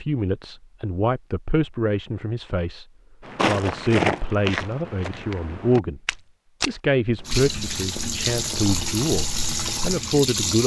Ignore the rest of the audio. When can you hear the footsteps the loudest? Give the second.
4 s.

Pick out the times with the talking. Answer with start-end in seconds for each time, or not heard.
0.0-2.9, 3.5-6.0, 6.7-10.6.